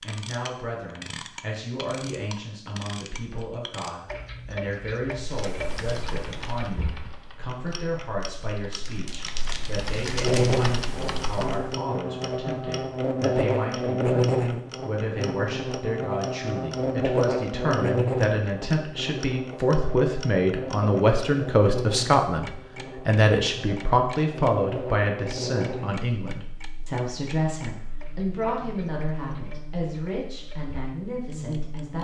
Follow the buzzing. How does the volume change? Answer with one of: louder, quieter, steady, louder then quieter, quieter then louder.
quieter.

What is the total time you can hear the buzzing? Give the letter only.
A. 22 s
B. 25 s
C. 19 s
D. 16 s
A.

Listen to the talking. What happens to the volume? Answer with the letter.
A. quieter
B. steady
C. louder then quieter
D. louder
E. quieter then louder
C.